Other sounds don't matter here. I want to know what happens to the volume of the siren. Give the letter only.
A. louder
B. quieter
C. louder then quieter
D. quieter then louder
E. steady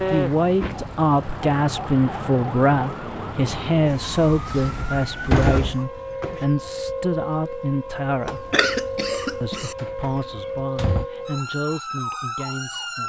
E.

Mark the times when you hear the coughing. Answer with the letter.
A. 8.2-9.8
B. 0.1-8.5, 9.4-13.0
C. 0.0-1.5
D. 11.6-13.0
A.